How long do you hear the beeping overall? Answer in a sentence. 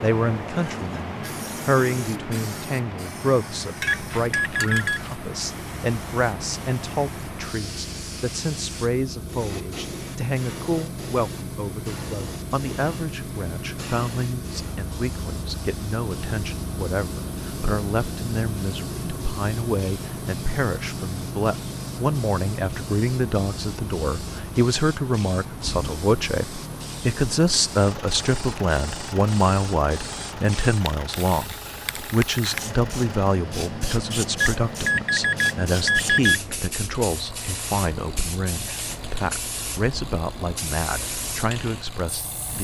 The beeping can be heard for 3 seconds in total.